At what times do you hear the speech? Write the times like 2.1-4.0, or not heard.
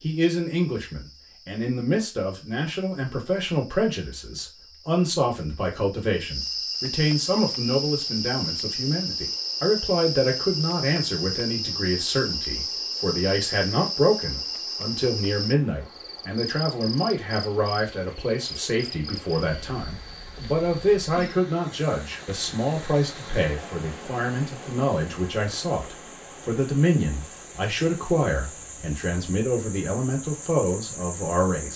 0.0-31.7.